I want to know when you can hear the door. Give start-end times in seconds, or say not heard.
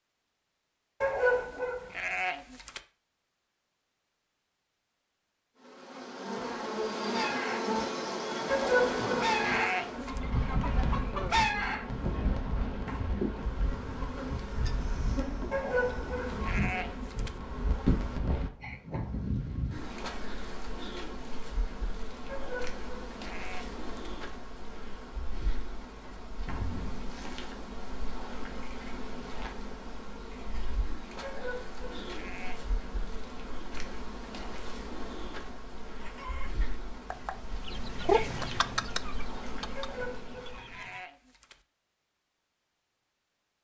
12.7-13.3, 26.1-27.1.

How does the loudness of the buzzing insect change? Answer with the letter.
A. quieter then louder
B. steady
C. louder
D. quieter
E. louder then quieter
D.